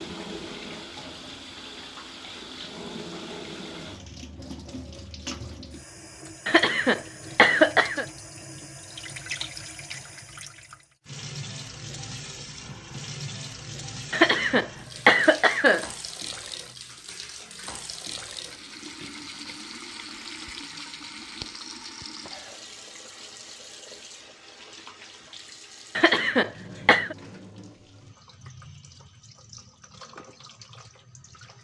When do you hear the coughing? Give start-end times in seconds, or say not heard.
6.5-8.1, 14.1-15.8, 25.9-27.1.